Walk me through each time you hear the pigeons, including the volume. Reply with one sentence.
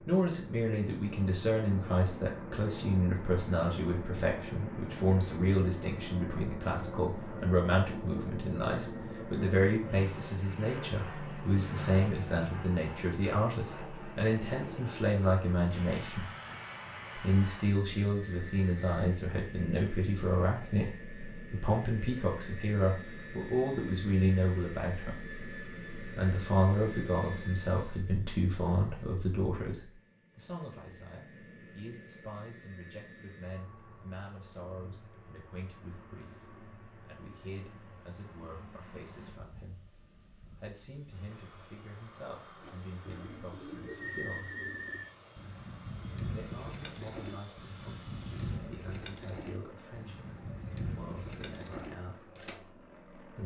The pigeons can be heard from 42.6 to 52.6 s, at a steady volume.